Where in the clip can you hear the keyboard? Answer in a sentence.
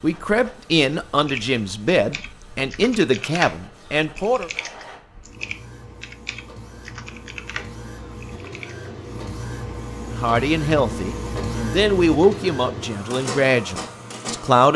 The keyboard can be heard from 1.2 to 8.8 s.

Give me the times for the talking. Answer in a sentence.
You can hear the talking from 0.0 to 4.5 s and from 10.1 to 14.7 s.